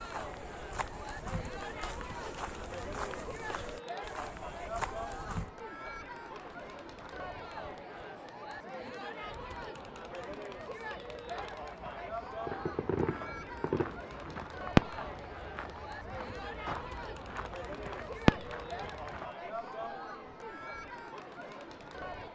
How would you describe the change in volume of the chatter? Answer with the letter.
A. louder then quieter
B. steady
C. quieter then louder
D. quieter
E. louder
B.